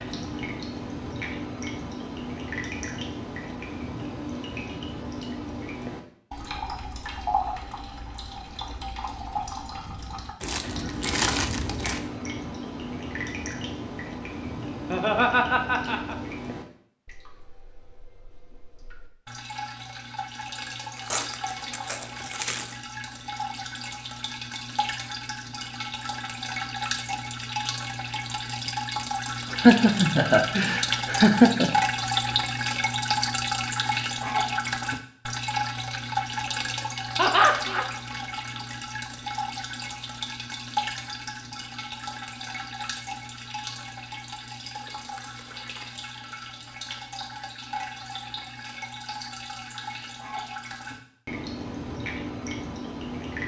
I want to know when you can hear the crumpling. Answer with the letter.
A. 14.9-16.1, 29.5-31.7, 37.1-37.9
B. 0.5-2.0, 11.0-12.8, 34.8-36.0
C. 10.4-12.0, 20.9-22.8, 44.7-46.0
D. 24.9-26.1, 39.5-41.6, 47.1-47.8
C.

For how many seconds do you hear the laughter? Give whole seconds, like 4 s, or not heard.
4 s.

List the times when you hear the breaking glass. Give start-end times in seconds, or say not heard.
not heard.